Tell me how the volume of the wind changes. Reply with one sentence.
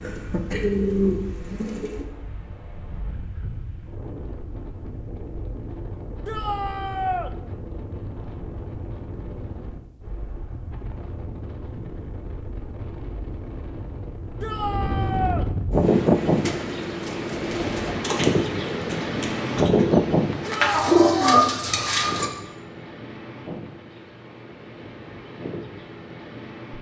The loudness of the wind goes up, then down.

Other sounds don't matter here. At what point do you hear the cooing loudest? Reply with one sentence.
The loudest moment of the cooing is at 21 seconds.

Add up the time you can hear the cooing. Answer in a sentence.
The cooing can be heard for 9 seconds in total.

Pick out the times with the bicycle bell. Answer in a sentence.
The bicycle bell can't be heard in this clip.